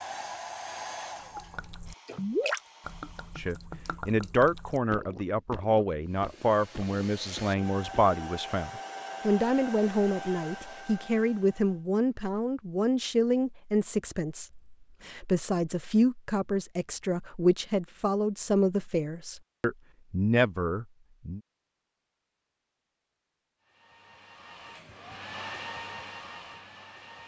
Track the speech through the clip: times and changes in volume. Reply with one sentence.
The speech can be heard from 3.4 to 21.4 s, at a steady volume.